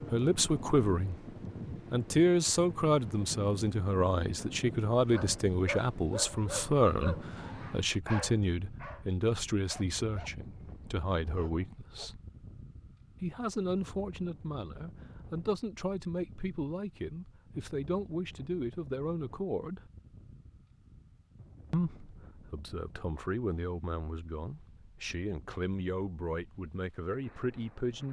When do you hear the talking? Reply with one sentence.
You can hear the talking from 0.1 to 1.1 s, from 1.9 to 12.2 s, from 13.2 to 19.8 s and from 21.7 to 28.0 s.